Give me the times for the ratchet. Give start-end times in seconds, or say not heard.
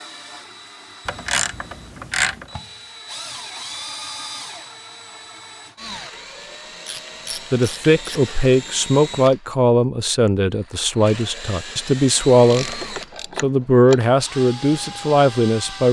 1.1-2.5, 6.8-8.2, 12.4-14.0.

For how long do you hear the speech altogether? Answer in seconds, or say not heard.
8 s.